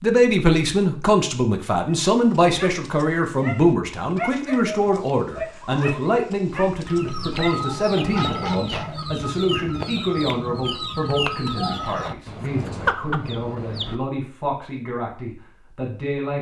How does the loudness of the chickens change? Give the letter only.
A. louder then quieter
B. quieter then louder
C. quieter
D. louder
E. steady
E.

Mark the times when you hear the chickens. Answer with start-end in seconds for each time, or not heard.
6.8-13.9.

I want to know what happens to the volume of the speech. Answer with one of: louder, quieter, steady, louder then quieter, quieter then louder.
quieter.